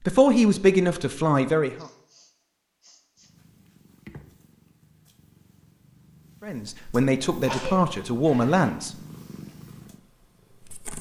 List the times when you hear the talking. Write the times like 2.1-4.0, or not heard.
0.1-1.9, 6.4-8.9.